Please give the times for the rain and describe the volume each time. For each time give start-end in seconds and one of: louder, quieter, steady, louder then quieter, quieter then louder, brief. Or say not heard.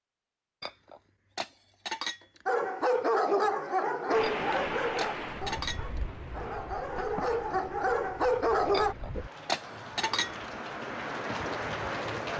4.1-12.3 quieter then louder.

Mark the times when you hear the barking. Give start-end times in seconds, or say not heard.
2.5-8.9.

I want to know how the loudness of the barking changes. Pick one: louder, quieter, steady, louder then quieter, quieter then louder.
quieter then louder.